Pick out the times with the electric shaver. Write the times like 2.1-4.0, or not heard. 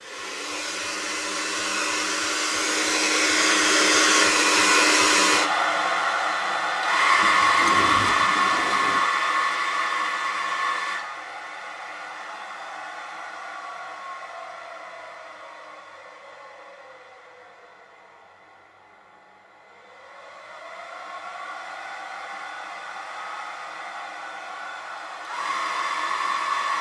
not heard.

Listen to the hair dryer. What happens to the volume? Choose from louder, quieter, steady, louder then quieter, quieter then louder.
quieter then louder.